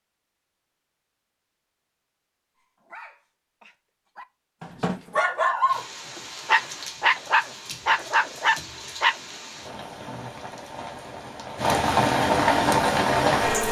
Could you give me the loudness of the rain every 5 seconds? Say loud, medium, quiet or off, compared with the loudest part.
off, quiet, loud.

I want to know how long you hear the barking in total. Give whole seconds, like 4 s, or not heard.
6 s.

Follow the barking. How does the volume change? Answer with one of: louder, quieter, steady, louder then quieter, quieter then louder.
louder.